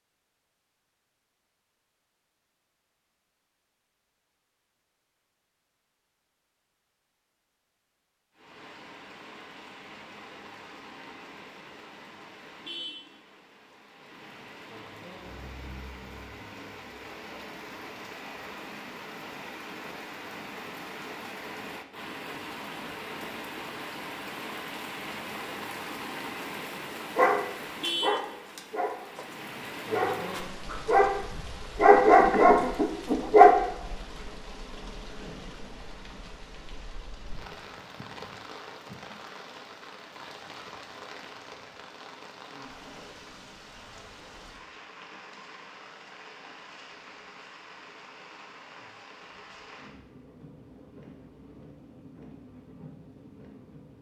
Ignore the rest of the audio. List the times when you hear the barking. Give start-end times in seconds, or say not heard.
27.1-33.5.